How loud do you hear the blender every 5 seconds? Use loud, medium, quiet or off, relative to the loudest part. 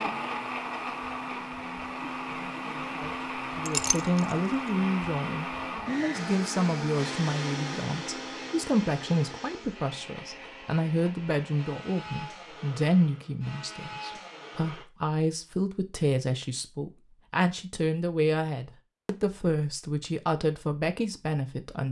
loud, loud, medium, off, off.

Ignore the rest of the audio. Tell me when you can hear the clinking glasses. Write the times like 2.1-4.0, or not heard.
3.6-4.3.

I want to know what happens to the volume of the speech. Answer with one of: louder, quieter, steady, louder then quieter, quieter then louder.
steady.